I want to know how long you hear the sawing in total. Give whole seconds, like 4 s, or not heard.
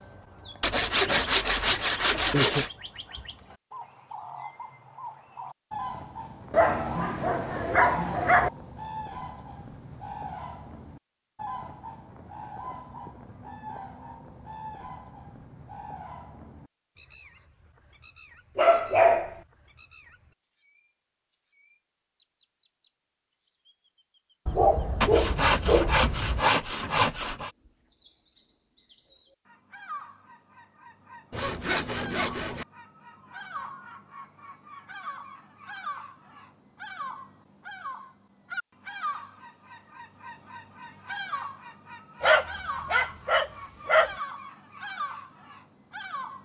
6 s.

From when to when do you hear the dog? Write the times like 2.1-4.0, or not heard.
6.5-8.5, 18.6-19.4, 24.4-26.4, 42.2-44.1.